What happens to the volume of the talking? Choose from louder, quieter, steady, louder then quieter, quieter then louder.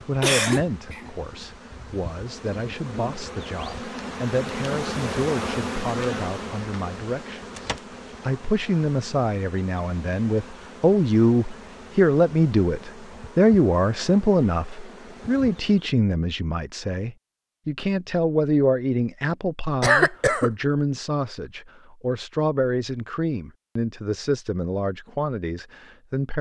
louder then quieter.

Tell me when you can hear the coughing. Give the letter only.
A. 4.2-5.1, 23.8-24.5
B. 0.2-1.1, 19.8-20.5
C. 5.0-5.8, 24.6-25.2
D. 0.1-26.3
B.